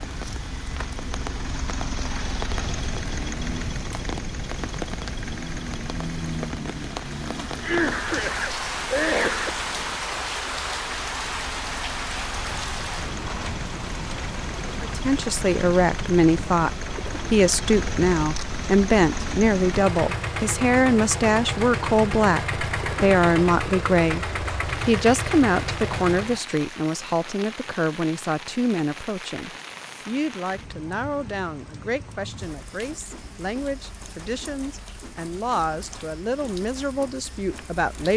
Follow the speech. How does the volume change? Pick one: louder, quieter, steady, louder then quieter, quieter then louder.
quieter.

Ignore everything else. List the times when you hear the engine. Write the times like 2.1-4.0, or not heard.
0.0-26.4.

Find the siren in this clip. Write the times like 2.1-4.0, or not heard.
not heard.